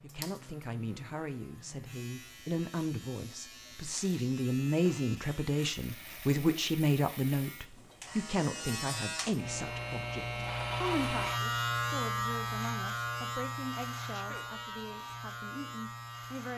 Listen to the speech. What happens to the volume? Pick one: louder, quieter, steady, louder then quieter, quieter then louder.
louder then quieter.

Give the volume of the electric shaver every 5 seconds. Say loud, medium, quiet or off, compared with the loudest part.
quiet, medium, loud, medium.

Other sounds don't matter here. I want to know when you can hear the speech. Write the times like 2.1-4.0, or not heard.
0.0-16.5.